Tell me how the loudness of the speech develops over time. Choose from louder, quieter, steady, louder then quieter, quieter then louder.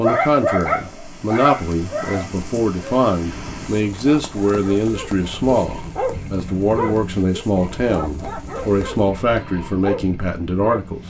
steady.